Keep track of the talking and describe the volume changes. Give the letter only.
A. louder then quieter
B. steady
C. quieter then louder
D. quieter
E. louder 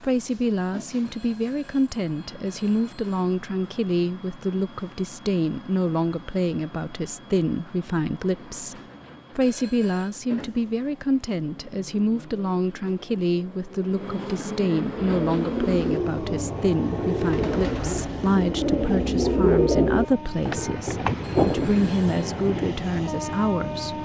B.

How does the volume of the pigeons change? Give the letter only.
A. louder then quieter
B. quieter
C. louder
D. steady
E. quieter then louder
C.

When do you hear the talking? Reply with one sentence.
You can hear the talking from 0.0 to 24.0 s.